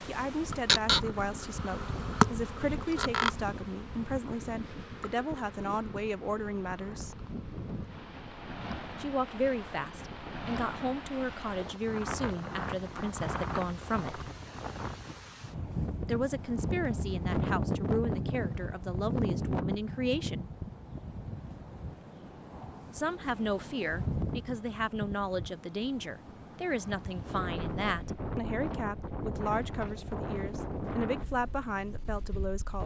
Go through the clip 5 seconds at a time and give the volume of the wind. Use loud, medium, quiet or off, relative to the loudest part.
medium, medium, medium, loud, medium, medium, medium.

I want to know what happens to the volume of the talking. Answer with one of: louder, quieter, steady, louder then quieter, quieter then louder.
steady.